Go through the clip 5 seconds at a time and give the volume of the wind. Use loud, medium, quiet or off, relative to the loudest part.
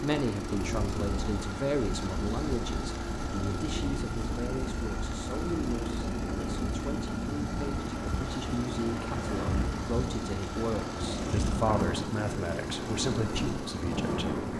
medium, loud, loud.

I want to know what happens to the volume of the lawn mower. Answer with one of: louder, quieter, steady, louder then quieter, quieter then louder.
steady.